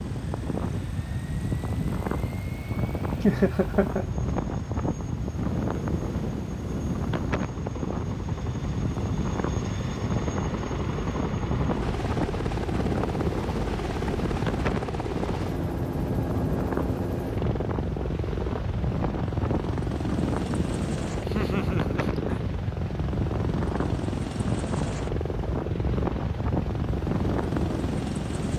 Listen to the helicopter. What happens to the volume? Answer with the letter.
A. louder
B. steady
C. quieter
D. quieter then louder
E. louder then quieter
A.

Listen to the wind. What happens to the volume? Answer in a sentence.
The volume of the wind stays about the same.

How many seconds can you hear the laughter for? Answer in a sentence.
You can hear the laughter for 2 seconds altogether.